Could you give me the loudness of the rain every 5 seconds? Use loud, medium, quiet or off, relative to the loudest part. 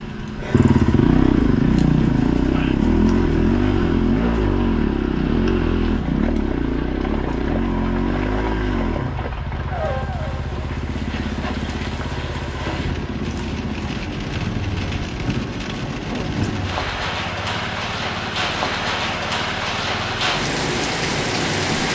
quiet, medium, medium, loud, loud.